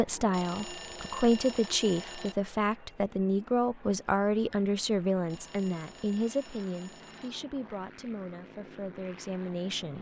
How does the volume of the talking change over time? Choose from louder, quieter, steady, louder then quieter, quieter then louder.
quieter.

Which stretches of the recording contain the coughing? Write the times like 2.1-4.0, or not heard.
not heard.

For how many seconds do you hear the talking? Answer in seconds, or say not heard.
10 s.